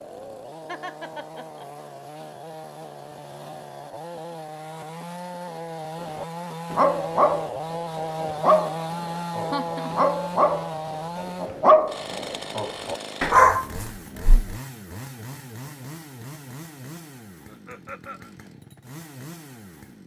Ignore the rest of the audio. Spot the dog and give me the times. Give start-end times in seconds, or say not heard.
6.2-14.6.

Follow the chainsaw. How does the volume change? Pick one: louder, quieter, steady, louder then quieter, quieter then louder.
louder then quieter.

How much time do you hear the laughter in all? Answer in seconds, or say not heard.
2 s.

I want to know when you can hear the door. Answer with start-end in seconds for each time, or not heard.
not heard.